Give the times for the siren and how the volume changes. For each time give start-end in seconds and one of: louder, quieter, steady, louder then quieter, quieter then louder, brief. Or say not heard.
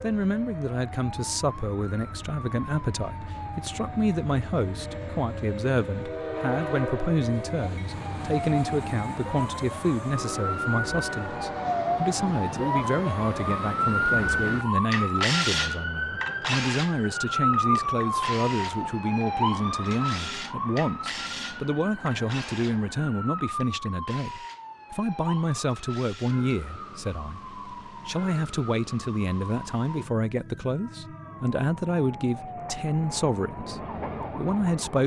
0.0-34.8 louder then quieter.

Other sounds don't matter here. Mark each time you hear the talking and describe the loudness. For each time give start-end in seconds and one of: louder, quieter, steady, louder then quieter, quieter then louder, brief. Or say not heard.
0.0-35.0 steady.